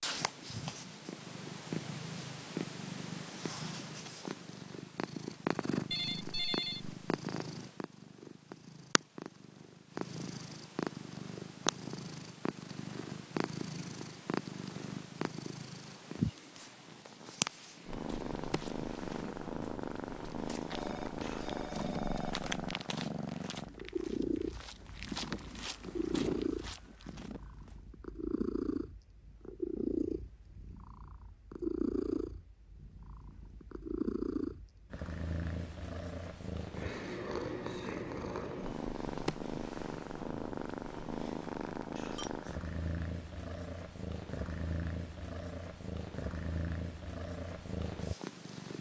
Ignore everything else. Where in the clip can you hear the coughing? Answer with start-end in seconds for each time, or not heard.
not heard.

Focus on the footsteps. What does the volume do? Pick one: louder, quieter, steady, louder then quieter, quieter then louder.
louder.